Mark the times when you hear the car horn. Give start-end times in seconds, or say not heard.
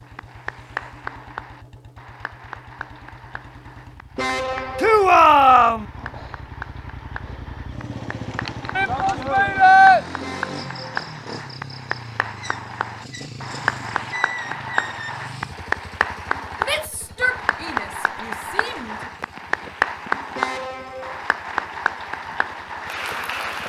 4.2-5.0, 10.2-10.9, 20.3-21.2.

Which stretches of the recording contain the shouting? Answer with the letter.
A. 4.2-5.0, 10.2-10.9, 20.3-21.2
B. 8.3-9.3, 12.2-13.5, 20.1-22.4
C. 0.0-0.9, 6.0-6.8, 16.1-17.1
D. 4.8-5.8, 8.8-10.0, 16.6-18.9
D.